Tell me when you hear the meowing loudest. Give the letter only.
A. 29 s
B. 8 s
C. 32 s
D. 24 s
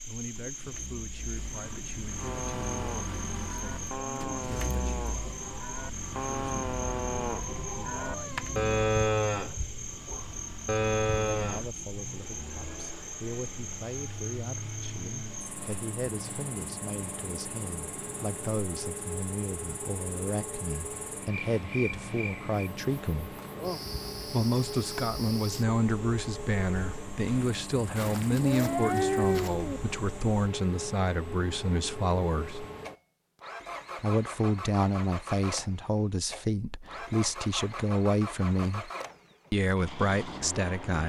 A.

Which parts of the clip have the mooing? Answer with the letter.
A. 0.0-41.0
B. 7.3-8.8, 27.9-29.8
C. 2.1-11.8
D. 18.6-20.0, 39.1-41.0
C.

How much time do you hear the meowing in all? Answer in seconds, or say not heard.
3 s.